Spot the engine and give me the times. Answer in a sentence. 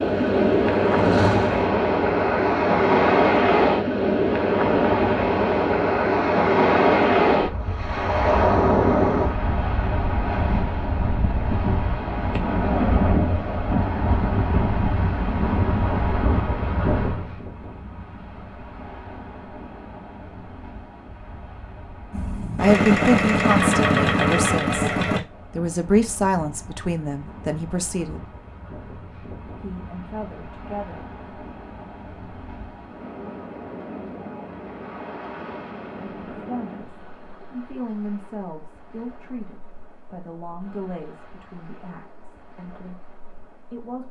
You can hear the engine from 0.0 to 1.7 s and from 22.1 to 25.2 s.